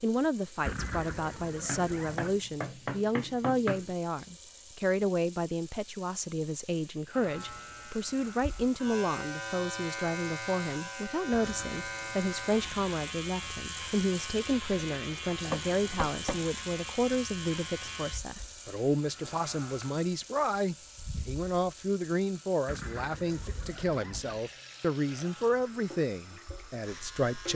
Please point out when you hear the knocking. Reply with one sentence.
You can hear the knocking from 1.6 to 4.0 s and from 15.4 to 16.4 s.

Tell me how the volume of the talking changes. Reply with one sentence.
The loudness of the talking stays about the same.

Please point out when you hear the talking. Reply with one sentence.
The talking can be heard from 0.0 to 27.5 s.